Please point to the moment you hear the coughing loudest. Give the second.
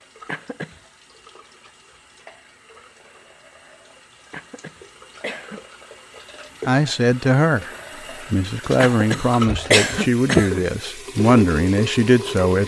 10 s.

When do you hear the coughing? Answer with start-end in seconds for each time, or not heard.
0.2-0.8, 4.3-5.6, 8.8-10.6.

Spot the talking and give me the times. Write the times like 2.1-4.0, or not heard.
6.7-7.7, 8.3-12.6.